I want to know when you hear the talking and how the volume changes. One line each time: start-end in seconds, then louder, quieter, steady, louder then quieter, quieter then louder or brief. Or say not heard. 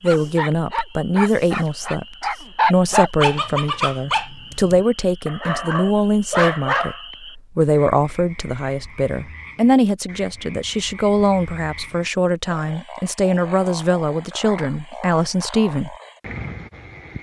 0.0-15.9 steady.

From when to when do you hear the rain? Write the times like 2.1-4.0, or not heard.
not heard.